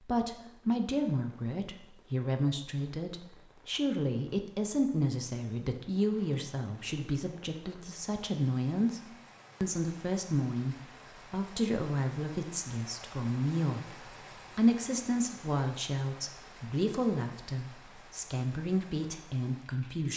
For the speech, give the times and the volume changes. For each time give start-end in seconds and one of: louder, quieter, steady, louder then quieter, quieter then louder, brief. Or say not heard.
0.0-20.1 steady.